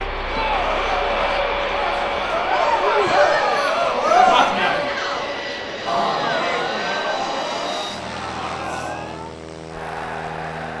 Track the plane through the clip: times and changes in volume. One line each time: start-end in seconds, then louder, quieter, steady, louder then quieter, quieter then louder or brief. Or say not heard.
0.0-10.7 quieter.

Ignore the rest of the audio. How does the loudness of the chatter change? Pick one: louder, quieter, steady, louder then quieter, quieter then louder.
louder then quieter.